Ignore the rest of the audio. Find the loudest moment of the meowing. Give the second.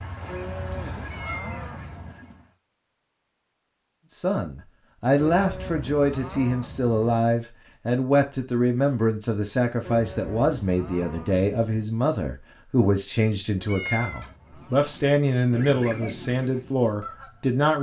14 s.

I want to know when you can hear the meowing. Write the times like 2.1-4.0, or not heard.
1.1-1.7, 13.7-14.3.